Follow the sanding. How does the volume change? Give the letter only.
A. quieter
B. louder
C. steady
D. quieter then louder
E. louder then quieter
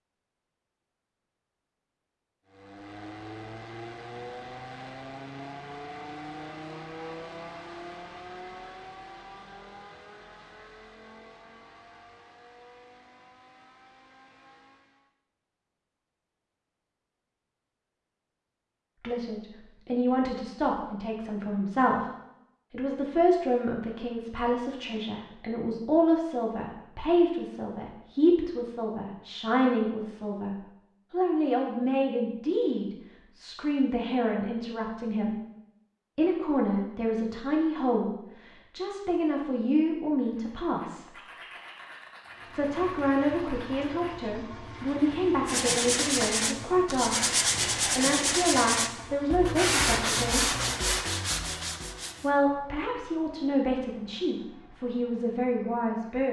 B.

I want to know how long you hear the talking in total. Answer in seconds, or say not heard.
33 s.